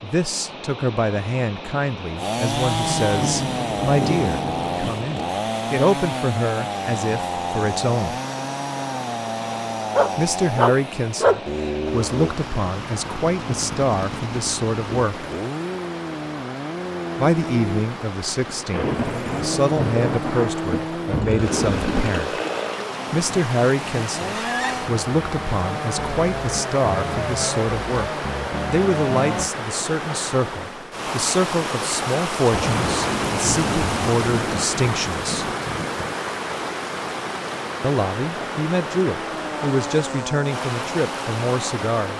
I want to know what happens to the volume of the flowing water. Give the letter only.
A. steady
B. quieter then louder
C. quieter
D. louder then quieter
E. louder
E.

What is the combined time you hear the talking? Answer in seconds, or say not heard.
35 s.